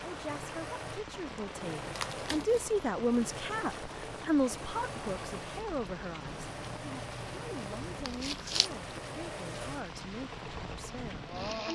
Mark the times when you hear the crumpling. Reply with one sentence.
The crumpling can be heard from 1.9 to 2.8 s and from 8.1 to 8.7 s.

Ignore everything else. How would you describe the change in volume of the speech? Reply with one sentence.
The loudness of the speech goes up, then down.